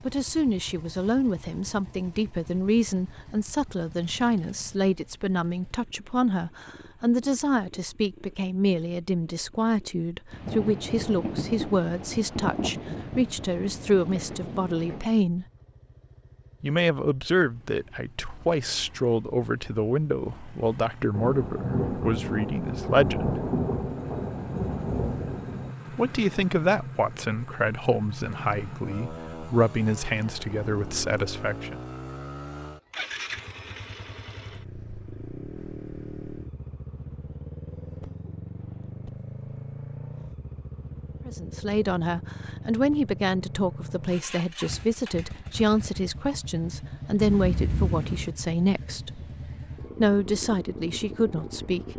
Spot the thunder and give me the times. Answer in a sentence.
The thunder can be heard from 10.3 to 15.1 s, from 21.1 to 25.8 s and from 47.1 to 48.3 s.